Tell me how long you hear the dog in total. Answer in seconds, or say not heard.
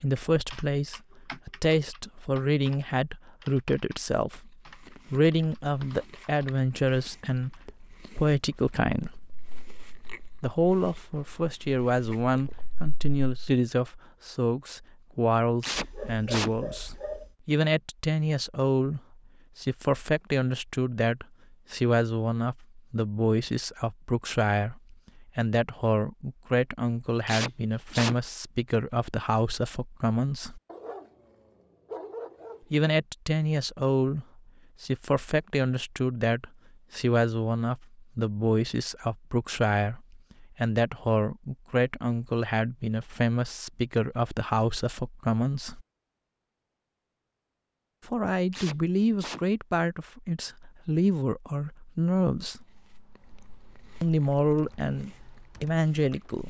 4 s.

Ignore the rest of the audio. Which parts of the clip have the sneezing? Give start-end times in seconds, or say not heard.
15.6-16.5, 27.2-28.1, 48.5-49.4.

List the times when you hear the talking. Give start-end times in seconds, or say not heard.
0.0-9.1, 10.4-30.6, 32.7-45.9, 48.0-52.6, 54.0-56.4.